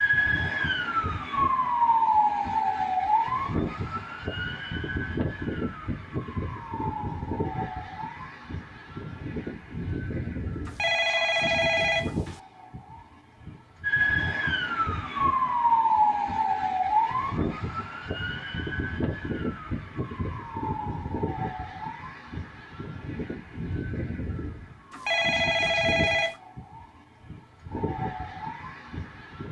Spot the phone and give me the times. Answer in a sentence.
You can hear the phone from 10.7 to 12.4 s and from 24.9 to 26.4 s.